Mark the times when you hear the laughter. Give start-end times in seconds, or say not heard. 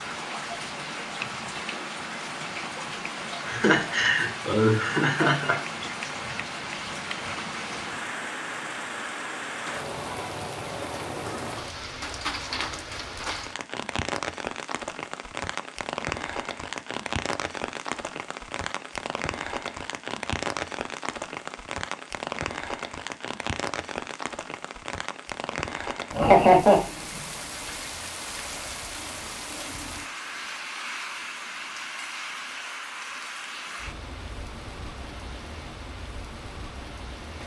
3.5-5.5, 26.1-26.8.